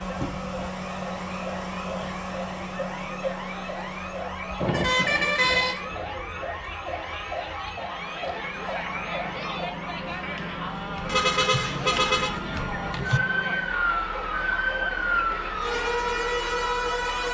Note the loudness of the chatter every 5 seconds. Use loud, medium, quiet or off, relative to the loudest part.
medium, loud, loud, loud.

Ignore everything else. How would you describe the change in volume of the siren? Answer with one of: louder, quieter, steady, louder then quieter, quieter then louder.
louder.